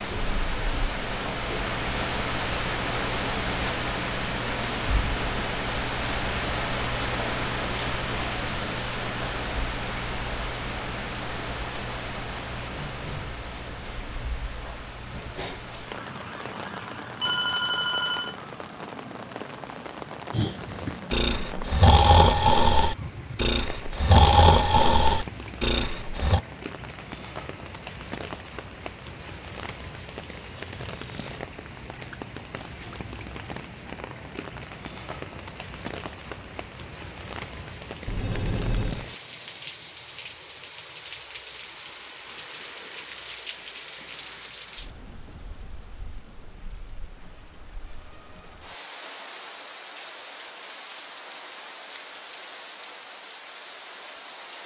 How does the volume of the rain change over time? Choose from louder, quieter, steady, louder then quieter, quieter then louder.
quieter.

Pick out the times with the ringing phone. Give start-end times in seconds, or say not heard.
17.2-18.4, 38.0-39.0.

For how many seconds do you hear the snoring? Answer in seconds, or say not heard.
6 s.